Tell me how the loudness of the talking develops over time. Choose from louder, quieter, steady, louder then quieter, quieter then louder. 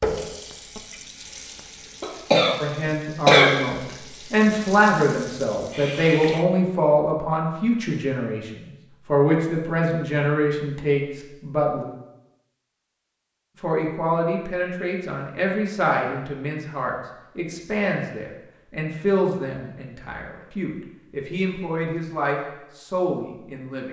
quieter.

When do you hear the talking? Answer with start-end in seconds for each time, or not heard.
2.5-11.8, 13.6-23.8.